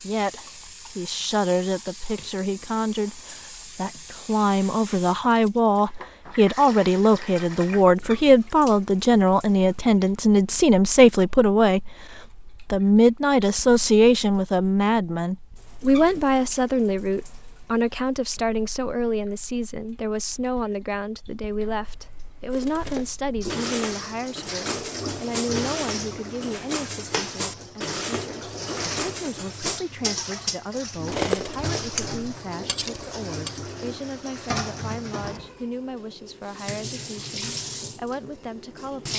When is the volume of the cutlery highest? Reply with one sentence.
The volume of the cutlery peaks at 31 seconds.